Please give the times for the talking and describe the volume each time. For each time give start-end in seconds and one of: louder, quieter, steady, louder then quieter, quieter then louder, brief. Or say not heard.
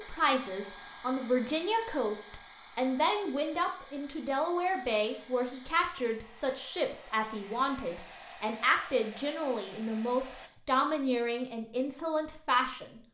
0.0-13.0 steady.